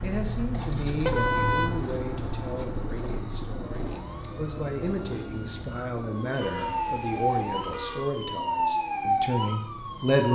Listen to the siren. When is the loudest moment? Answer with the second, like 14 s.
9 s.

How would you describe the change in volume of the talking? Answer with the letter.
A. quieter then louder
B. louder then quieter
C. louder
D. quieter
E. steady
A.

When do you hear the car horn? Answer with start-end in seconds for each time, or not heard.
1.0-1.7, 6.4-8.1.